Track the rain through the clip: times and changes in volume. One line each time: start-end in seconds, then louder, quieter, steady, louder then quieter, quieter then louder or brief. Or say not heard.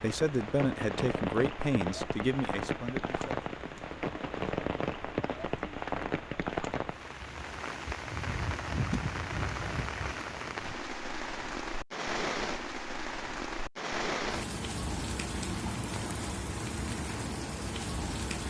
0.0-18.4 steady.